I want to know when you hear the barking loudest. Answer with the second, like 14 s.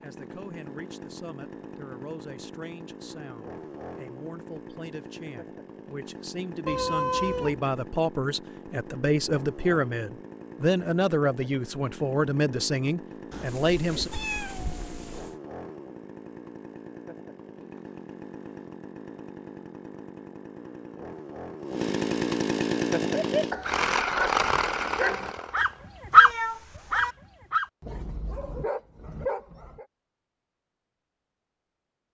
26 s.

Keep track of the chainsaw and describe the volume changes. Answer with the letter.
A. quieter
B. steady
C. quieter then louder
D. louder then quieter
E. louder
E.